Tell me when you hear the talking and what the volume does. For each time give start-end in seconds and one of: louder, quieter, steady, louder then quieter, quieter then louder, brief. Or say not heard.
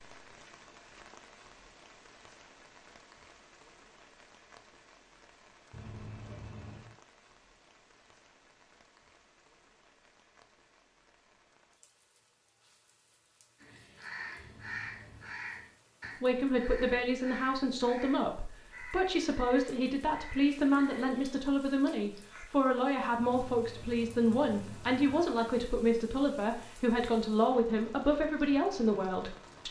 16.2-29.6 steady.